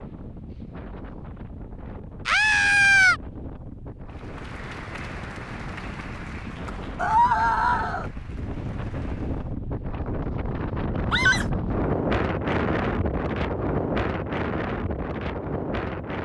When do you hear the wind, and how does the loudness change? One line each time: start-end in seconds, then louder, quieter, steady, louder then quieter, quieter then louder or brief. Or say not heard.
0.0-16.2 louder.